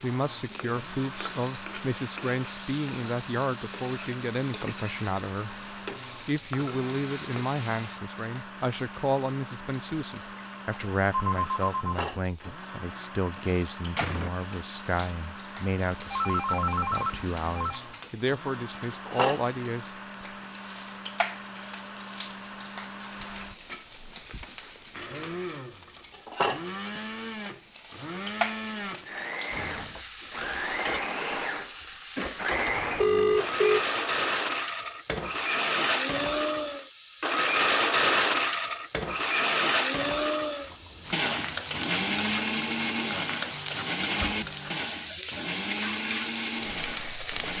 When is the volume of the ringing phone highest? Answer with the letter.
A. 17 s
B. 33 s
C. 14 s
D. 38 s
B.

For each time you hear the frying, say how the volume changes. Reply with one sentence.
The frying can be heard from 0.0 to 47.5 s, getting louder.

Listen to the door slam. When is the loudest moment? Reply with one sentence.
The loudest moment of the door slam is at 14 seconds.